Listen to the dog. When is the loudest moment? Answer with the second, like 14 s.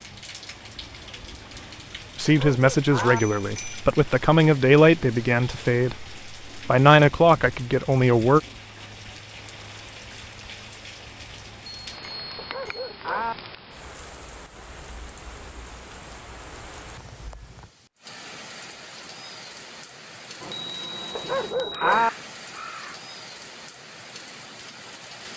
22 s.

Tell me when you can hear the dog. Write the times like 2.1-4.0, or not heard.
2.2-3.2, 12.3-13.3, 21.1-22.1.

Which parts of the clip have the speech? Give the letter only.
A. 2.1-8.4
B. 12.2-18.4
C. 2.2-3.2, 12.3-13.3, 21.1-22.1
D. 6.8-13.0
A.